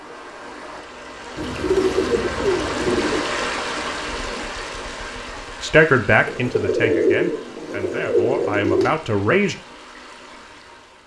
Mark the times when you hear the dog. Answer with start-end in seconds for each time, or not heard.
not heard.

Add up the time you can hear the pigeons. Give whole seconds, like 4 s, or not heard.
5 s.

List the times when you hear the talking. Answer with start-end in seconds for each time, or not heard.
5.6-9.6.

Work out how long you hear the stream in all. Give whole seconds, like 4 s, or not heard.
11 s.